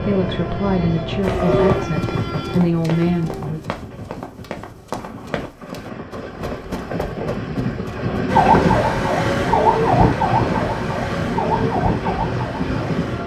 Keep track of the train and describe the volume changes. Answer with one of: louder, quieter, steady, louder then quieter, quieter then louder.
quieter then louder.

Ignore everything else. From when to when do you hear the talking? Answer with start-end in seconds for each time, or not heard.
0.0-3.6.